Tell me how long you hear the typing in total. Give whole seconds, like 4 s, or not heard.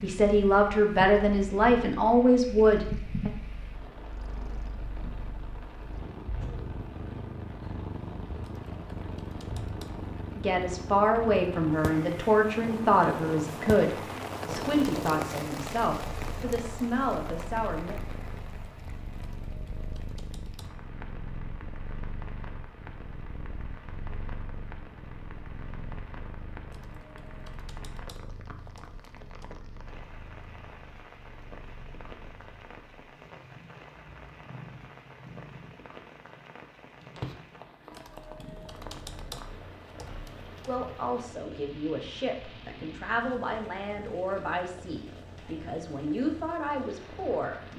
9 s.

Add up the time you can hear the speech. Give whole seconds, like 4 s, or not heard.
18 s.